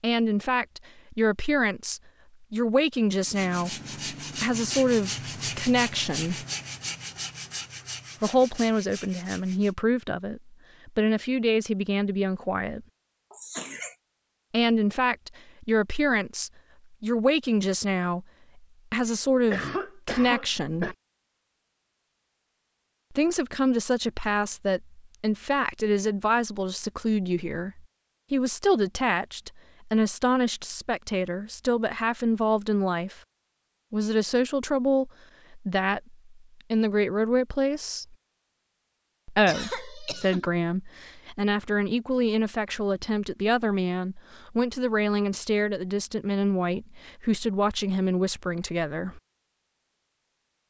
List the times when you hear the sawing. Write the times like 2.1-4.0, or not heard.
3.2-9.8.